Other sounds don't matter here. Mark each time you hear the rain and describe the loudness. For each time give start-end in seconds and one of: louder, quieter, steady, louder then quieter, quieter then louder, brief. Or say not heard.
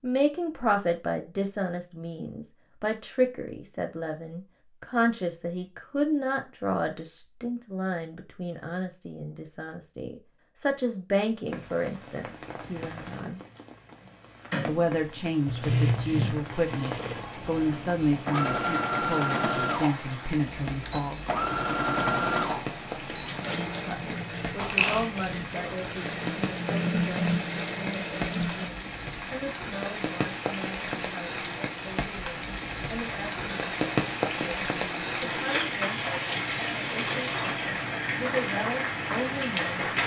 11.4-40.0 louder.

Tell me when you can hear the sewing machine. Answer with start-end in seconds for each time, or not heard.
15.4-28.7.